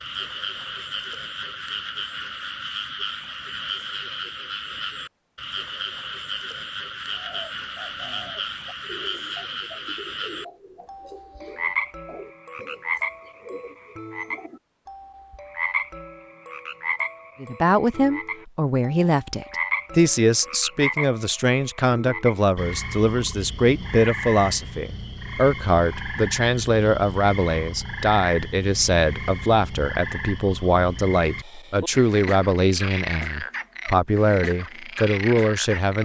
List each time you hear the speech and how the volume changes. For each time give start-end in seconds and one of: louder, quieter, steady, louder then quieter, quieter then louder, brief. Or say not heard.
17.4-36.0 steady.